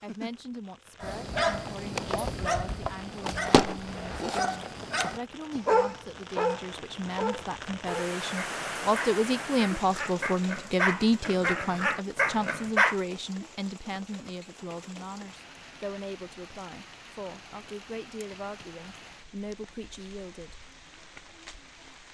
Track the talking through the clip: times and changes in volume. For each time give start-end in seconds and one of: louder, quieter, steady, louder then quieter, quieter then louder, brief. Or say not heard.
0.0-20.6 louder then quieter.